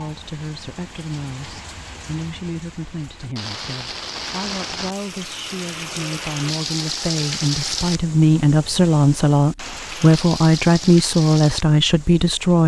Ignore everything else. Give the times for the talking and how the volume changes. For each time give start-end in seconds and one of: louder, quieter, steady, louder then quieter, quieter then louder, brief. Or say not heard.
0.0-12.6 louder.